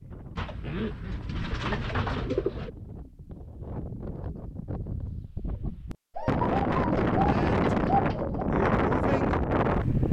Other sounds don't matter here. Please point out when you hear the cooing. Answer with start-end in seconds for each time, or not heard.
0.3-2.7, 6.2-8.5.